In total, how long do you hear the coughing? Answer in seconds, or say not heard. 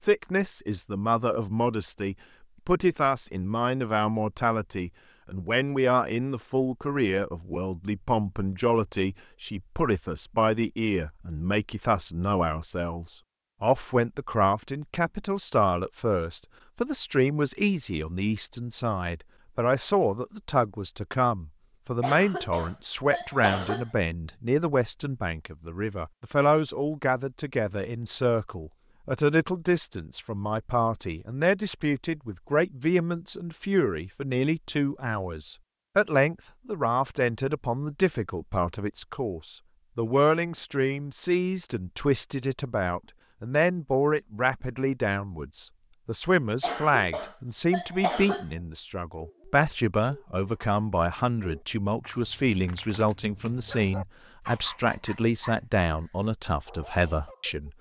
4 s.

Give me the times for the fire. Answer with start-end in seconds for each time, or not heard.
not heard.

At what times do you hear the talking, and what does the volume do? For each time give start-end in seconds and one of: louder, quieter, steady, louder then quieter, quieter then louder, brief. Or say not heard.
0.0-57.7 steady.